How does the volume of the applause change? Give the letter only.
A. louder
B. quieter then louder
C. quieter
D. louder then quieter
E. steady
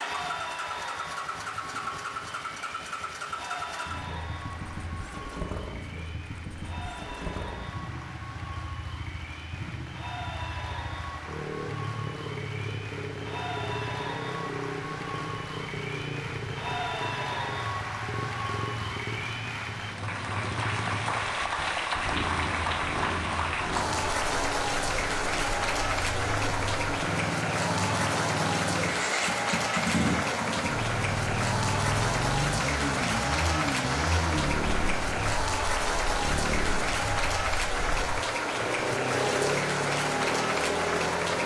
A.